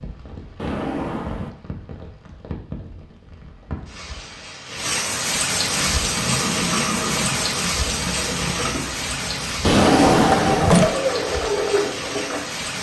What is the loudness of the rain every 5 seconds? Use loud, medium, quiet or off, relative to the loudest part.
medium, loud, medium.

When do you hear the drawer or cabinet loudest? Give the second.
10 s.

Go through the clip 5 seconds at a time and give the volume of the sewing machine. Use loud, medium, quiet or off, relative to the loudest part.
off, medium, loud.